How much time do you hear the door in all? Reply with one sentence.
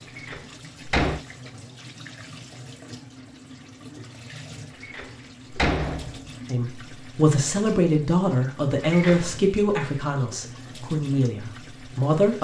You can hear the door for 3 seconds altogether.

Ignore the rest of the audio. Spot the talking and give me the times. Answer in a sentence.
The talking can be heard from 6.5 to 12.3 s.